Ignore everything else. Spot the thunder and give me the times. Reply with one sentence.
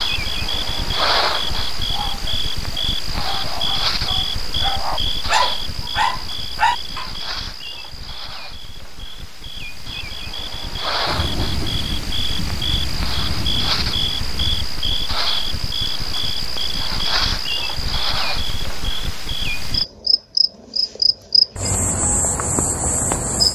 You can hear the thunder from 11.1 to 14.8 s.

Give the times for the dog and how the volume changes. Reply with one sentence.
You can hear the dog from 1.8 to 7.0 s, getting louder.